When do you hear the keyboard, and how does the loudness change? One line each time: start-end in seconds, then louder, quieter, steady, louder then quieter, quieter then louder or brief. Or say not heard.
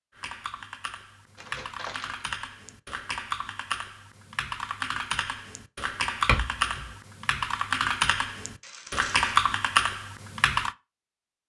0.1-10.7 louder.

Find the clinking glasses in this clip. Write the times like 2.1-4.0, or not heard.
6.2-6.9.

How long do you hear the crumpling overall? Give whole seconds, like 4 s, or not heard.
2 s.